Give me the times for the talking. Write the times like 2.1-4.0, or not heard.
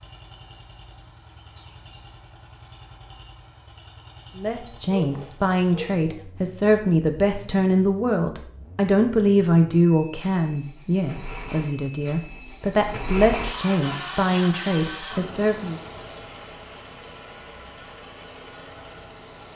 4.3-15.8.